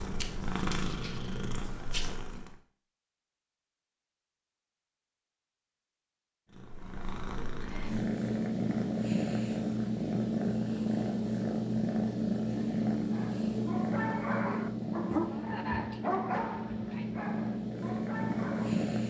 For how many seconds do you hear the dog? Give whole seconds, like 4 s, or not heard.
6 s.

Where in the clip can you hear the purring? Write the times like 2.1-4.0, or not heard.
0.0-2.6, 6.5-19.0.